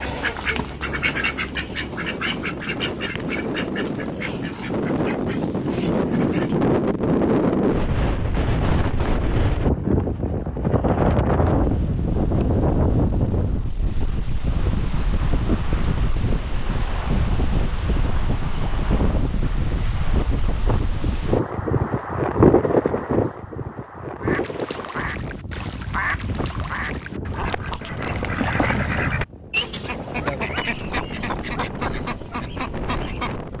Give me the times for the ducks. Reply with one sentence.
You can hear the ducks from 0.0 to 6.7 s and from 24.2 to 33.5 s.